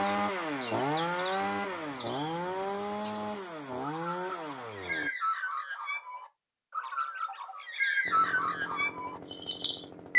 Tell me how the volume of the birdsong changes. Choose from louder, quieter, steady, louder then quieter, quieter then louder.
louder.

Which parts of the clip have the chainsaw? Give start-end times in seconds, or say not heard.
0.0-5.1, 8.1-10.1.